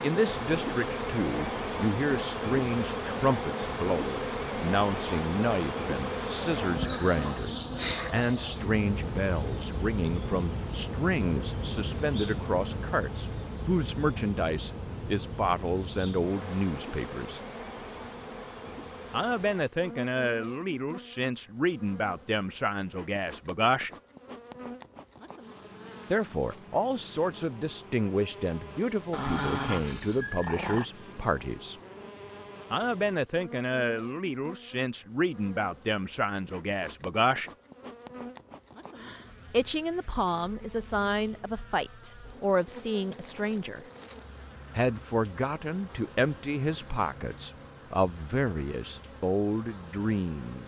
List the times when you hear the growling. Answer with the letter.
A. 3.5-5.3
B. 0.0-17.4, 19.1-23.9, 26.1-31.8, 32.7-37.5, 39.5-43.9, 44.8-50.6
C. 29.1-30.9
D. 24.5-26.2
C.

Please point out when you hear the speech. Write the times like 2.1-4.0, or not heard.
0.0-17.4, 19.1-23.9, 26.1-31.8, 32.7-37.5, 39.5-43.9, 44.8-50.6.